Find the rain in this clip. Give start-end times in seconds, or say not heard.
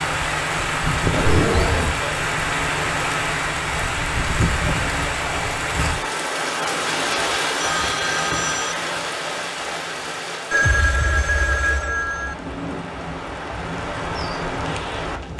0.0-15.3.